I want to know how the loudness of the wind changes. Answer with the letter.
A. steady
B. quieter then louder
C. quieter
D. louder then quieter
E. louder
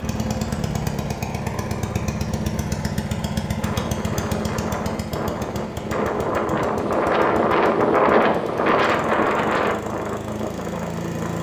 D.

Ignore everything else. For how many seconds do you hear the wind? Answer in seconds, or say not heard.
8 s.